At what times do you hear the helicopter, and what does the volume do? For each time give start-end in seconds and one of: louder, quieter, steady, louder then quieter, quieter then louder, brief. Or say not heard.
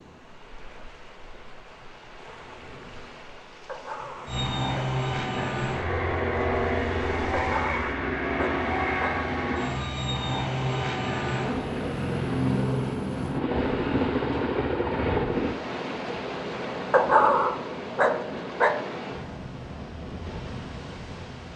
4.2-15.6 steady.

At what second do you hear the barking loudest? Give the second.
17 s.